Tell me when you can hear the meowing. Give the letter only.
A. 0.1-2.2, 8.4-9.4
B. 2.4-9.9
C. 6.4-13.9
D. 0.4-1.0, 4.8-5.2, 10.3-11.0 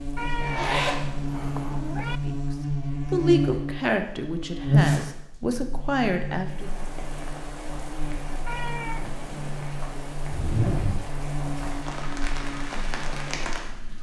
A.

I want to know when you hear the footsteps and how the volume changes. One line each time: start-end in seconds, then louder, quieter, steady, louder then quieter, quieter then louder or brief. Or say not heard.
not heard.